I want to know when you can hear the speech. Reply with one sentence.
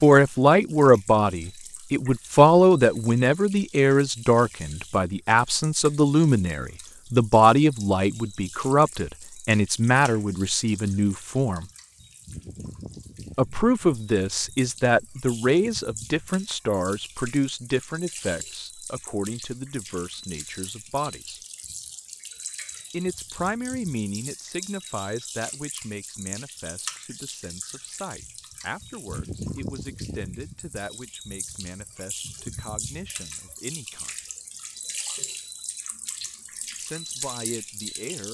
The speech can be heard from 0.0 to 11.7 s, from 13.3 to 21.4 s, from 22.9 to 34.1 s and from 36.8 to 38.2 s.